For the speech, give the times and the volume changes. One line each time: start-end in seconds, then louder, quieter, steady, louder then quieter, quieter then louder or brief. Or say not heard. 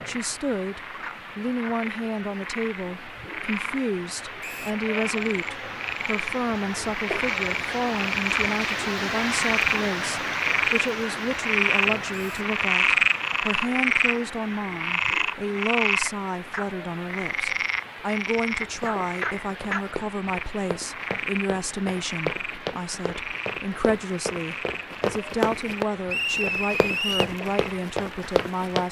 0.1-28.8 steady.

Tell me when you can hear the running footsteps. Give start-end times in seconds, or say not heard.
18.6-28.8.